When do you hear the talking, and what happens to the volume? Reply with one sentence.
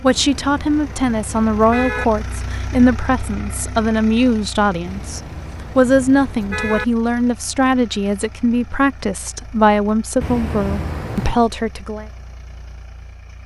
The talking can be heard from 0.0 to 12.1 s, at a steady volume.